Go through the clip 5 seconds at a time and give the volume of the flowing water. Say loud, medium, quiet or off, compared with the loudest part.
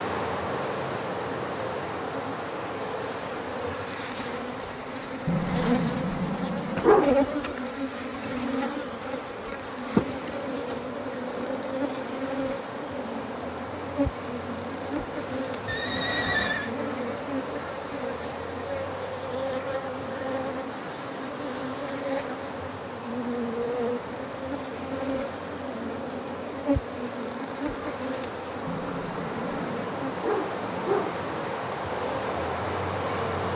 loud, medium, medium, medium, medium, medium, loud.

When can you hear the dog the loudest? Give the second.
7 s.